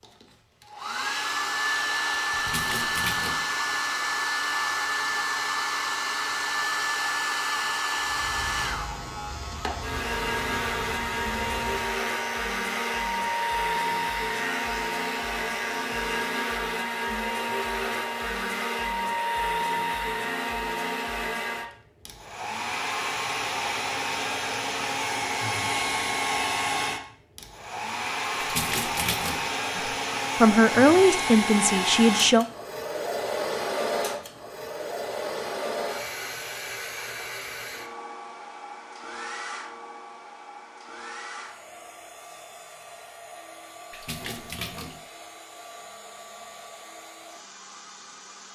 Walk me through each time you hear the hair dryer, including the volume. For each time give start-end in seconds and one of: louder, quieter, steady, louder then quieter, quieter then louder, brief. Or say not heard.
0.0-48.5 quieter.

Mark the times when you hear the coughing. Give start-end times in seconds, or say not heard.
not heard.